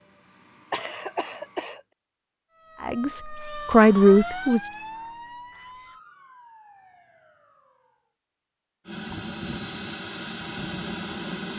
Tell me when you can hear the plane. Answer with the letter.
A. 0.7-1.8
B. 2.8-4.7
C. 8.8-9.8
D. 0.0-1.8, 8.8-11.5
D.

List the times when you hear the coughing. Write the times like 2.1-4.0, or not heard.
0.7-1.8.